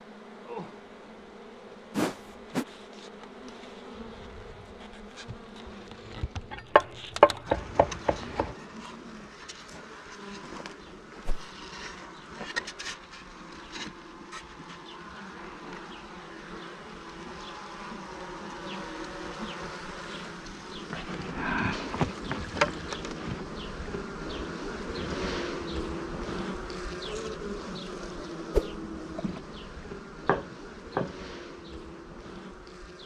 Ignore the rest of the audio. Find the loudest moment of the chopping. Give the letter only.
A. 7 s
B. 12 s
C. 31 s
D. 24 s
A.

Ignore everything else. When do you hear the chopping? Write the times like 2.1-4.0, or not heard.
6.5-8.6, 30.2-31.1.